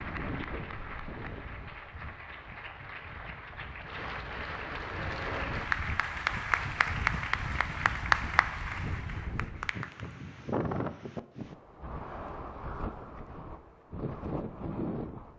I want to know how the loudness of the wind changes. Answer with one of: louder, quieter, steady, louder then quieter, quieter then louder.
louder.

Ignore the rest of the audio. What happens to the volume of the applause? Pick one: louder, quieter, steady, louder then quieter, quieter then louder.
louder.